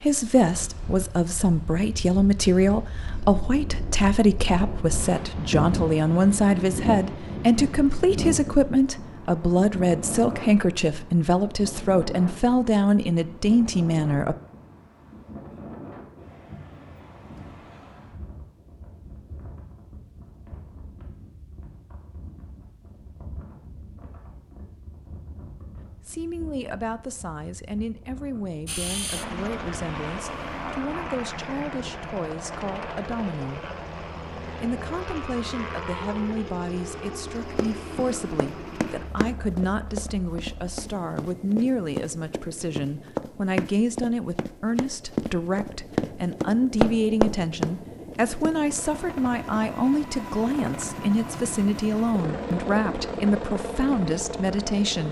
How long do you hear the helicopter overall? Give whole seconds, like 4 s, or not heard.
26 s.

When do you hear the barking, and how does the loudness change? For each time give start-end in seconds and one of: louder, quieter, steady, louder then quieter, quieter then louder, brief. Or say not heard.
not heard.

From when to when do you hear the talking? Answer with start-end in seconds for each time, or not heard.
0.0-14.3, 26.1-33.6, 34.6-55.0.